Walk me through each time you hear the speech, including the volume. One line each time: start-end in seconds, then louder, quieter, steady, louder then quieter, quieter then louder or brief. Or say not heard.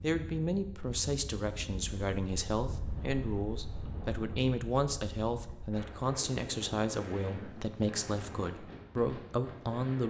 0.0-10.0 steady.